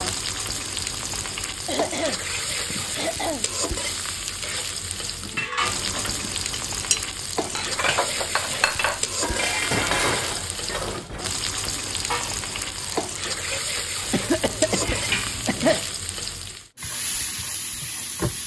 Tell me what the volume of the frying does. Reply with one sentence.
The volume of the frying stays about the same.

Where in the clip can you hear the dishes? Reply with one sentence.
The dishes can be heard from 5.2 to 15.8 s.